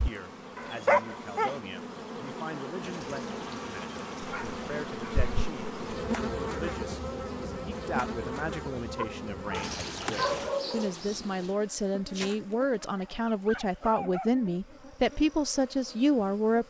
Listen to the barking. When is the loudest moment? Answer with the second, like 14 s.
1 s.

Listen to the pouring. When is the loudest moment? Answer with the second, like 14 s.
10 s.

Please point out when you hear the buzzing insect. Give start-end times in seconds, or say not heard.
0.0-16.6.